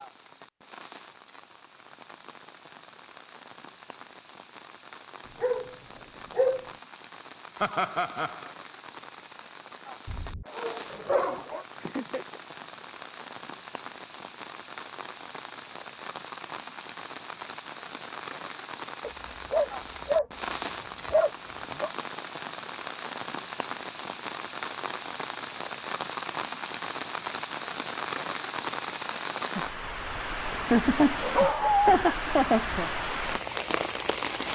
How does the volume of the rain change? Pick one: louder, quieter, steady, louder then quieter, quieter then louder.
louder.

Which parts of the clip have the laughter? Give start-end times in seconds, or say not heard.
7.6-8.5, 11.8-12.4, 30.5-32.9.